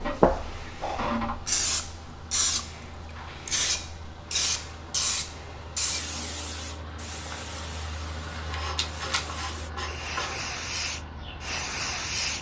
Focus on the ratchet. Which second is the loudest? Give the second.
1 s.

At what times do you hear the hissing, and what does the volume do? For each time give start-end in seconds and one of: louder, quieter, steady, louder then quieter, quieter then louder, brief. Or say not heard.
0.0-12.3 quieter then louder.